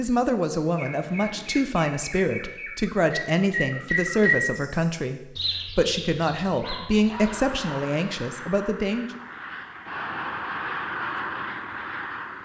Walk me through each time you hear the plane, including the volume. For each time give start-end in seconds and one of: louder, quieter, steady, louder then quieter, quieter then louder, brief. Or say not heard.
0.0-1.6 brief
7.2-12.3 louder.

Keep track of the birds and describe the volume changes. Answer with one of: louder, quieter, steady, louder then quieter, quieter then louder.
louder then quieter.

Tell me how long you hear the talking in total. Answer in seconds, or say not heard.
9 s.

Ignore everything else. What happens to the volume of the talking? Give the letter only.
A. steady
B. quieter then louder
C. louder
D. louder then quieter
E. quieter
A.